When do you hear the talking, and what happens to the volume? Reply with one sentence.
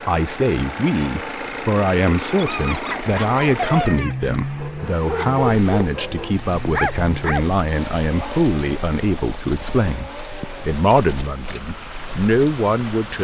You can hear the talking from 0.1 to 13.1 s, at a steady volume.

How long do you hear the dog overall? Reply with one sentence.
You can hear the dog for 5 seconds altogether.